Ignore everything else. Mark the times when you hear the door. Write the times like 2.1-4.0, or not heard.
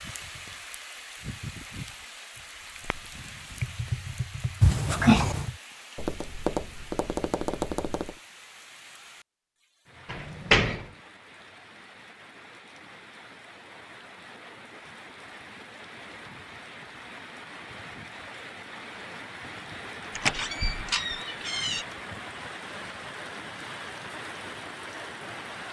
4.6-5.5, 10.1-10.8, 20.1-21.9.